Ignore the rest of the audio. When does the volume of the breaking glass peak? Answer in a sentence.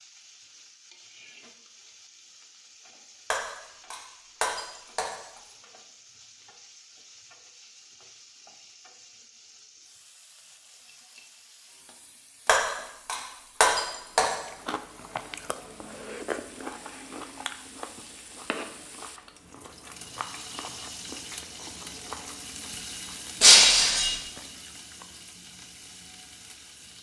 The volume of the breaking glass peaks at 24 seconds.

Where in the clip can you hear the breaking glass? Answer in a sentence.
The breaking glass can be heard from 3.3 to 5.2 s, from 12.4 to 14.3 s and from 23.4 to 24.1 s.